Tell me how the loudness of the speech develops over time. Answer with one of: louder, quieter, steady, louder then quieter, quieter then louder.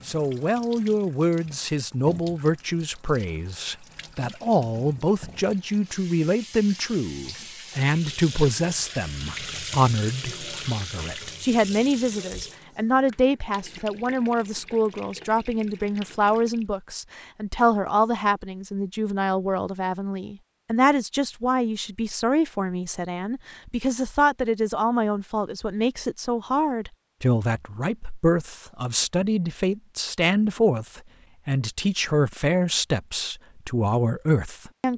steady.